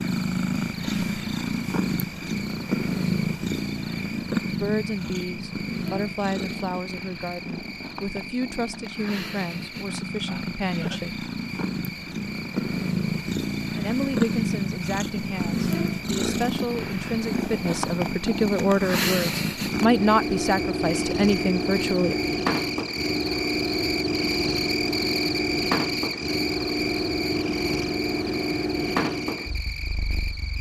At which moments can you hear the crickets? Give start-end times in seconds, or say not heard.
0.0-30.5.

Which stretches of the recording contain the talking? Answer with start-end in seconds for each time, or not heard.
4.6-11.2, 13.8-22.1.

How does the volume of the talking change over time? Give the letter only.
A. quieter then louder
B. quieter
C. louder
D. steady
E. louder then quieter
C.